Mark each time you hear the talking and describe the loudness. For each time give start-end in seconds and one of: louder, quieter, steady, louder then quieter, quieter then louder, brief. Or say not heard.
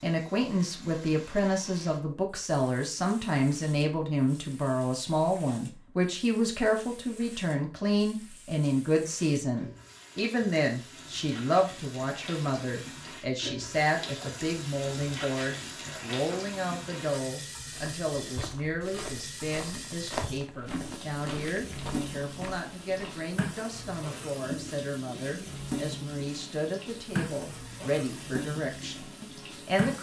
0.0-29.9 quieter.